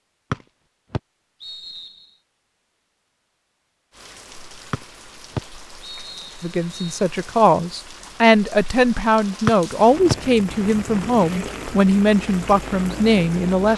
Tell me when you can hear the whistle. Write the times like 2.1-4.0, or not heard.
0.3-2.0, 4.7-7.0, 9.4-10.2.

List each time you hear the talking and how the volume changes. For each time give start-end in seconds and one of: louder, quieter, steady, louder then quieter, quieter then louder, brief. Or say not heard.
6.4-13.7 steady.